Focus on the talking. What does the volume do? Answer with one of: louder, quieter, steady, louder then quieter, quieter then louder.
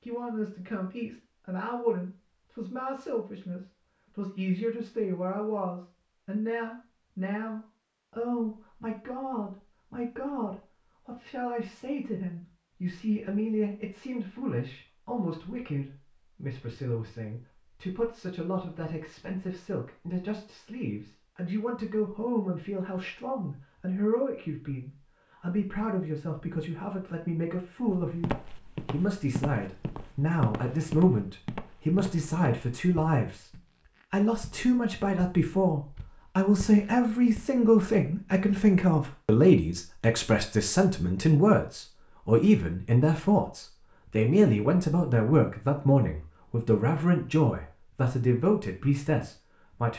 louder.